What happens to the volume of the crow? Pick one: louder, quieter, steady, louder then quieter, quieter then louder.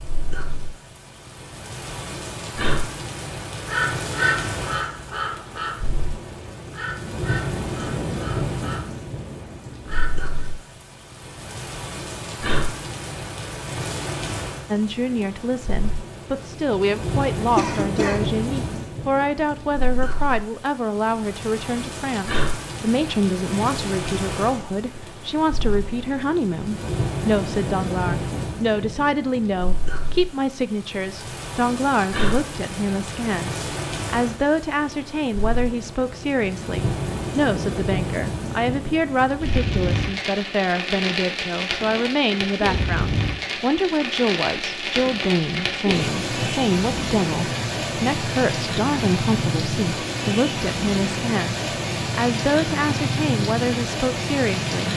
quieter.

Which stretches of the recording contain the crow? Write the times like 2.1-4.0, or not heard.
3.6-10.3.